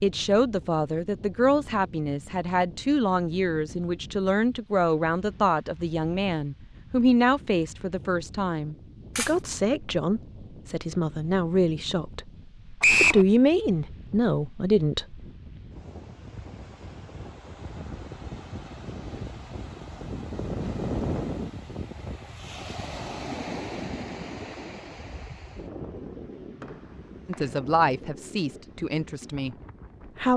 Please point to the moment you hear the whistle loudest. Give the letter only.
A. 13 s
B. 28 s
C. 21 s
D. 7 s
A.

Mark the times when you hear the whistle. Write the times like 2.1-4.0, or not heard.
12.8-13.2, 26.6-27.5.